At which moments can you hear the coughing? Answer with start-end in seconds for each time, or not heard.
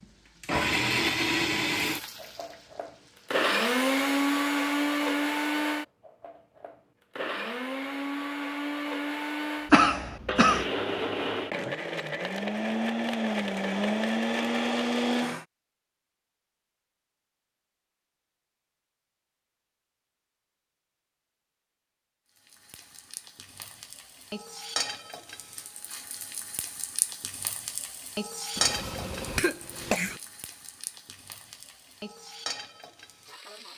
9.7-10.7, 28.6-30.2.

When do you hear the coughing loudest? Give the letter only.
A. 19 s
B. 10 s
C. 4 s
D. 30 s
B.